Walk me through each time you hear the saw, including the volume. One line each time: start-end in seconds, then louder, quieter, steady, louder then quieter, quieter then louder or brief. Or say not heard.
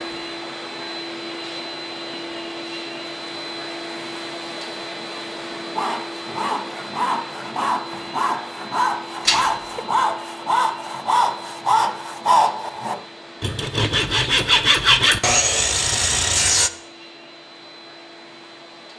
5.8-16.7 louder.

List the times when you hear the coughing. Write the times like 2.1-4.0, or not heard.
9.2-9.8.